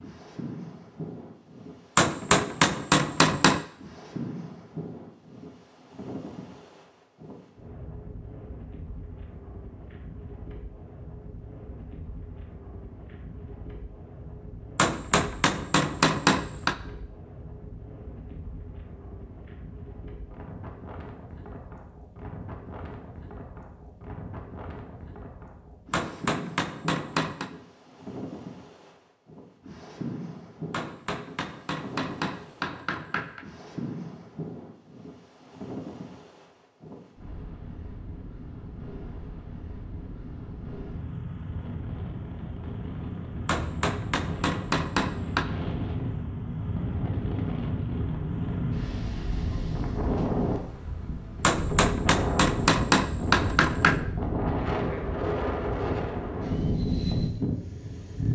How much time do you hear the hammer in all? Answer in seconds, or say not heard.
13 s.